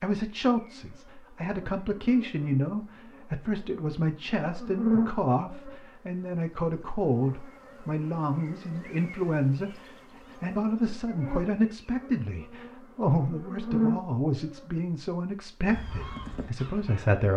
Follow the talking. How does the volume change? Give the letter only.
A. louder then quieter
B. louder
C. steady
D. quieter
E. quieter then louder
C.